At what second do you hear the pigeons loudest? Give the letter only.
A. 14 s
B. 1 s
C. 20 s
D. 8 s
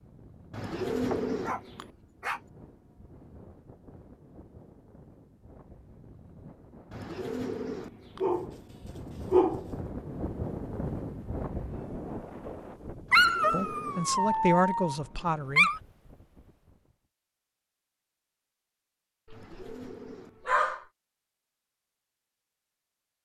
B.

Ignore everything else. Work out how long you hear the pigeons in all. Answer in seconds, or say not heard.
5 s.